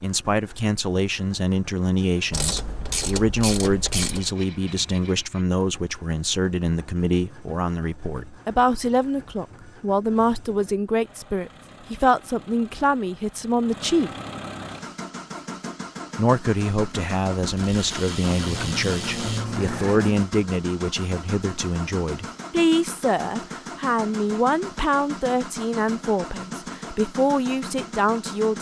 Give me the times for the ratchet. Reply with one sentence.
You can hear the ratchet from 2.3 to 4.3 s and from 17.4 to 19.4 s.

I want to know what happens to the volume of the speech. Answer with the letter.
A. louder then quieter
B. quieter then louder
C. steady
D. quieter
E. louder
C.